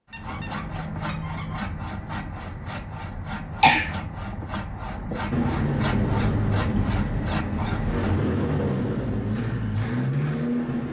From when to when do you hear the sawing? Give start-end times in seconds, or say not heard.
0.1-8.2.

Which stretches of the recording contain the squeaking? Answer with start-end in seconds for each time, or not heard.
0.1-1.6.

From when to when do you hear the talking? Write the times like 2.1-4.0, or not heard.
not heard.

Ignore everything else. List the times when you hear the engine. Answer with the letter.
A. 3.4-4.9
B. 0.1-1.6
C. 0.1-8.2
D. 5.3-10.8
D.